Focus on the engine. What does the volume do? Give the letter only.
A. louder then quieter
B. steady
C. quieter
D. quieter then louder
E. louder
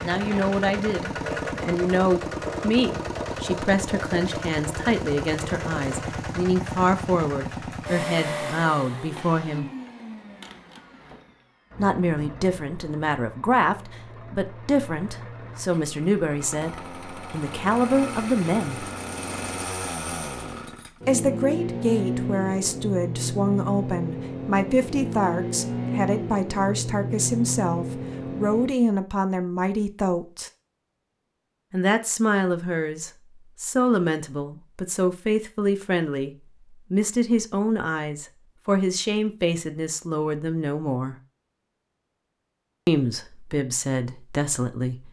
D.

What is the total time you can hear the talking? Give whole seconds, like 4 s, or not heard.
38 s.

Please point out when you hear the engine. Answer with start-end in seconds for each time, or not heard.
0.0-28.8.